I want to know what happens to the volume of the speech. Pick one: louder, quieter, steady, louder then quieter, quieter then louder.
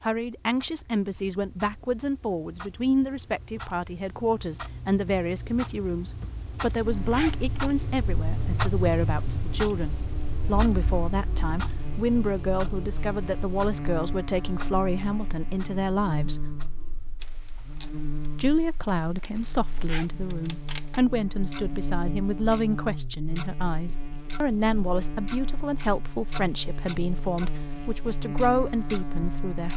steady.